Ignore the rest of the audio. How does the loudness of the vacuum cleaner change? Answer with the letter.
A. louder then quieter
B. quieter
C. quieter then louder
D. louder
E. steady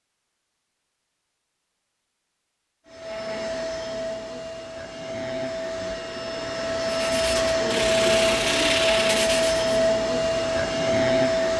D.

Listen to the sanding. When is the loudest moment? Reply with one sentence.
The loudest moment of the sanding is at 9 seconds.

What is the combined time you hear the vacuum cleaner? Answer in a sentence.
The vacuum cleaner can be heard for 9 seconds in total.